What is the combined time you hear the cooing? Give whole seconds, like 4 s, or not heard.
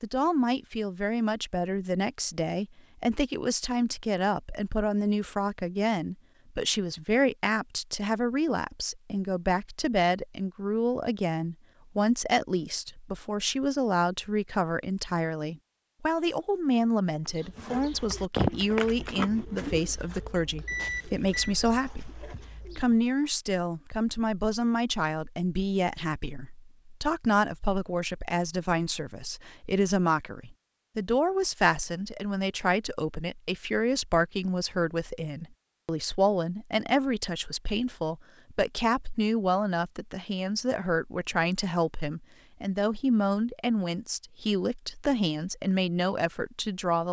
6 s.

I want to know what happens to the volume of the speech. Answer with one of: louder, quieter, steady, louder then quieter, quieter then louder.
steady.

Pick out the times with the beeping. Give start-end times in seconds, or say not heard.
20.6-21.6.